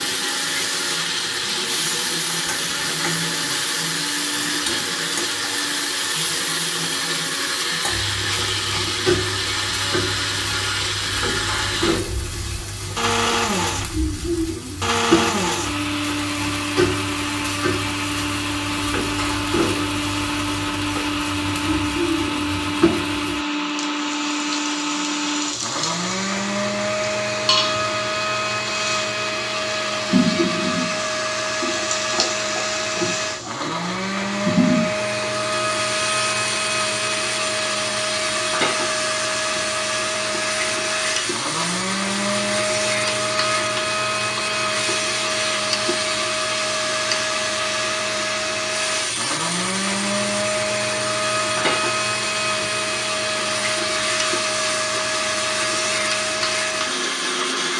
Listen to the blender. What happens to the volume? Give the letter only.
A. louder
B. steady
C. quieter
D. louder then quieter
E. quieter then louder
B.